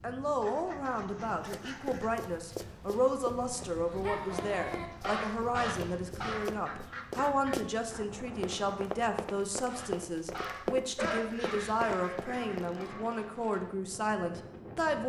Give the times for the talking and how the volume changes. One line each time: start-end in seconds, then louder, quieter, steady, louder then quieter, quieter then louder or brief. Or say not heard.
0.0-15.0 steady.